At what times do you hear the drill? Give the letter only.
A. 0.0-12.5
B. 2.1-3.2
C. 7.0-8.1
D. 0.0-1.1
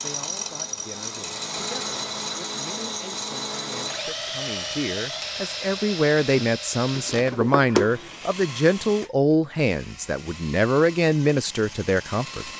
A.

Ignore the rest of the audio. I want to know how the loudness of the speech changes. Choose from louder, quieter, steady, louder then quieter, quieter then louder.
louder.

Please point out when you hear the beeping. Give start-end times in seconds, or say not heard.
7.0-8.1.